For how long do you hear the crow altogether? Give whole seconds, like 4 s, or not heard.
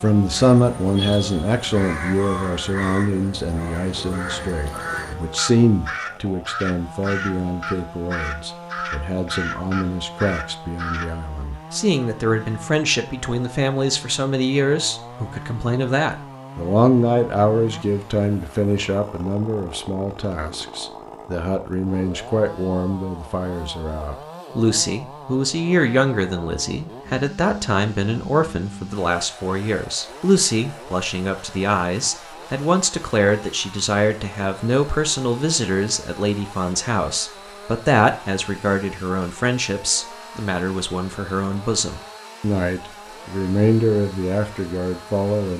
11 s.